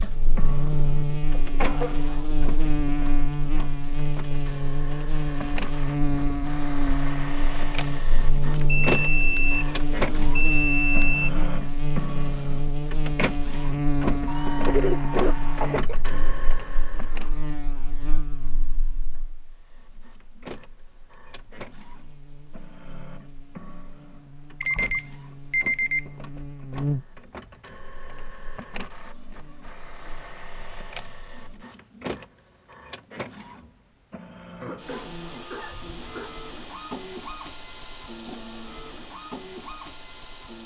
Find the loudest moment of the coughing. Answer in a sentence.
The loudest moment of the coughing is at 15 seconds.